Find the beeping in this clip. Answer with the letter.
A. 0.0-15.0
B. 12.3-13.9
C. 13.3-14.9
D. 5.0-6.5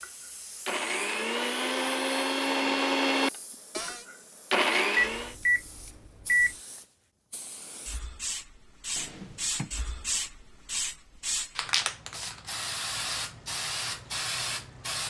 D.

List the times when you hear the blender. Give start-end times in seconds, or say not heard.
0.0-5.3.